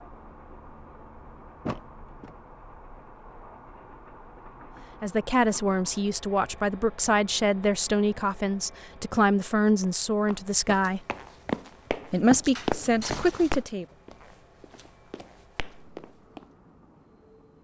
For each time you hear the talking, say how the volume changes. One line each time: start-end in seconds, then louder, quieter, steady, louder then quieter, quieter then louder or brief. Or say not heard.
5.0-11.0 steady
12.1-13.8 brief.